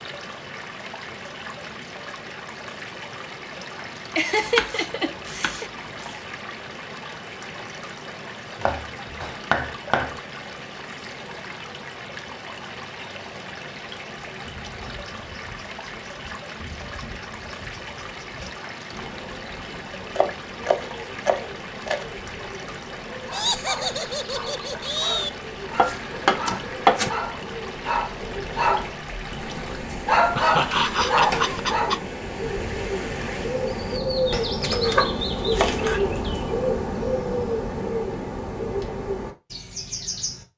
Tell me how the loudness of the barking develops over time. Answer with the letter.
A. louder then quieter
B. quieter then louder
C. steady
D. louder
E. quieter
D.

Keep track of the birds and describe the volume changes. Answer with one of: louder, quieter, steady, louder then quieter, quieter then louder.
louder.